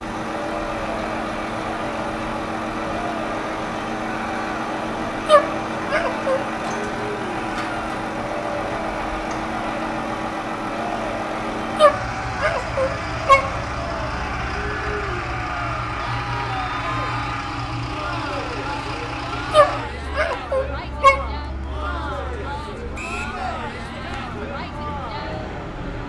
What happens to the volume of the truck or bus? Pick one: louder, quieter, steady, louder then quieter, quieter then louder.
quieter.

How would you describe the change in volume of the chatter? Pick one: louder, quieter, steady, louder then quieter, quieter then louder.
steady.